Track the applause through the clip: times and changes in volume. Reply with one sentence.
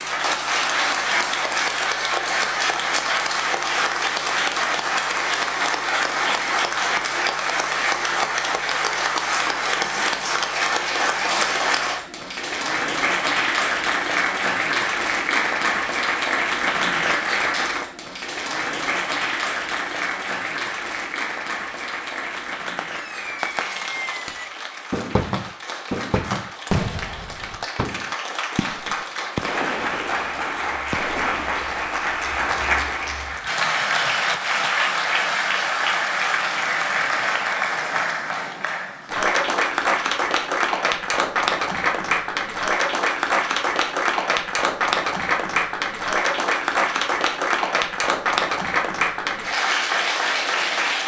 You can hear the applause from 0.0 to 51.0 s, getting quieter then louder.